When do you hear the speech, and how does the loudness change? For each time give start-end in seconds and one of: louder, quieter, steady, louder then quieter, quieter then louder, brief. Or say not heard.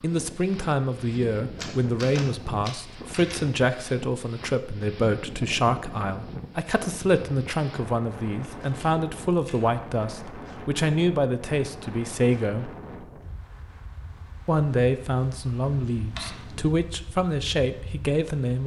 0.0-12.7 steady
14.4-18.6 steady.